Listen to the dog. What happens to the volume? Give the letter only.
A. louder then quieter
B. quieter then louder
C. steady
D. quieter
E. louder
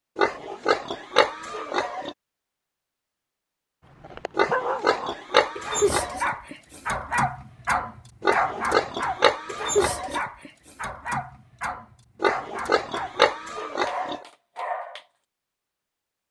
D.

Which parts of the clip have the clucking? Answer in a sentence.
You can't hear the clucking here.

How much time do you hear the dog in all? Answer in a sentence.
You can hear the dog for 11 seconds altogether.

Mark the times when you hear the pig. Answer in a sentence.
The pig can be heard from 0.1 to 2.1 s, from 4.3 to 6.3 s, from 8.2 to 10.2 s and from 12.2 to 14.2 s.